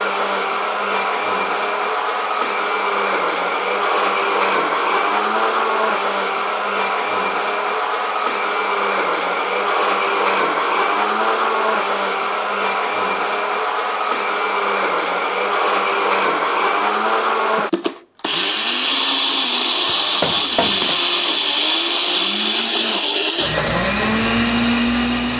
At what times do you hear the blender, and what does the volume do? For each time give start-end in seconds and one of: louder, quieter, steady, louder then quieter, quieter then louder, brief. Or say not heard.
0.0-25.3 steady.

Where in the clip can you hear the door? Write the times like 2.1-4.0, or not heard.
19.9-21.0.